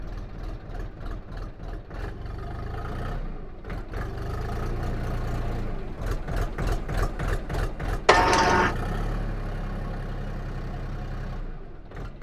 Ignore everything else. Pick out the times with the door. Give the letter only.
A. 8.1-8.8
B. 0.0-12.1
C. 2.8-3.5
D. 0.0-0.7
A.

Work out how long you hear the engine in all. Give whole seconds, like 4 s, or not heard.
12 s.